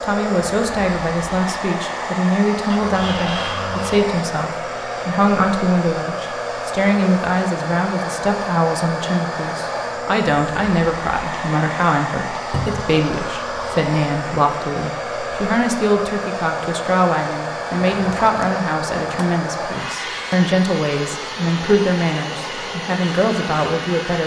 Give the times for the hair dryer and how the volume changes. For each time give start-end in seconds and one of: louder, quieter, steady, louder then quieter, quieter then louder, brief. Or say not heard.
0.0-24.2 steady.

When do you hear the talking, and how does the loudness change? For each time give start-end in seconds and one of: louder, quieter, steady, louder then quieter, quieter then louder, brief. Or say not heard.
0.0-24.2 steady.